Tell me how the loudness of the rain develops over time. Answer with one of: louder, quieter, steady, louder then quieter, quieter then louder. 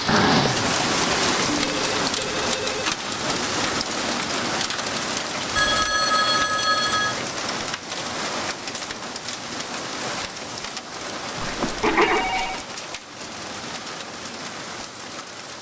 quieter.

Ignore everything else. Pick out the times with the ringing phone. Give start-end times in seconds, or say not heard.
1.4-2.9, 5.5-7.2, 11.4-12.7.